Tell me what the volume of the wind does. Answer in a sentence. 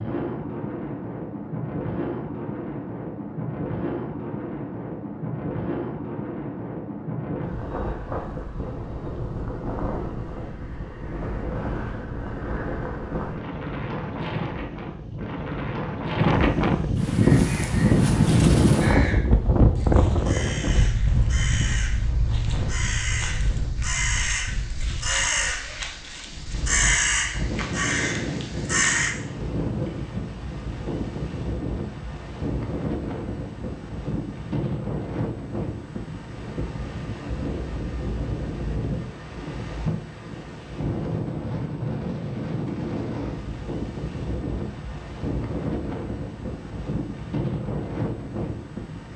The loudness of the wind goes up, then down.